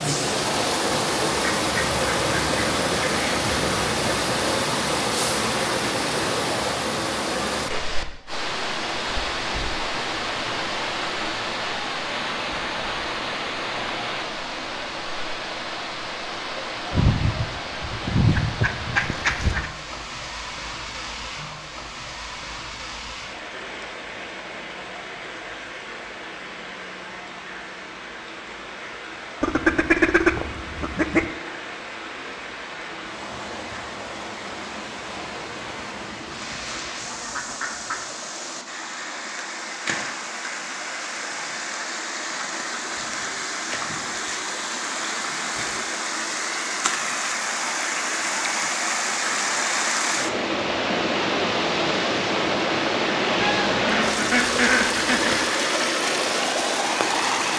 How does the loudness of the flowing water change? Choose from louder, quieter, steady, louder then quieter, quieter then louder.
quieter then louder.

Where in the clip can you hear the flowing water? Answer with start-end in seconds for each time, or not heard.
0.0-57.5.